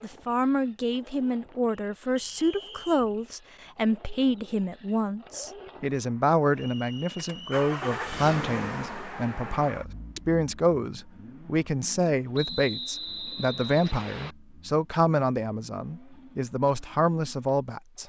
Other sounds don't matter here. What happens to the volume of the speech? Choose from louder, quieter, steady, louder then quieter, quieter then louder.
steady.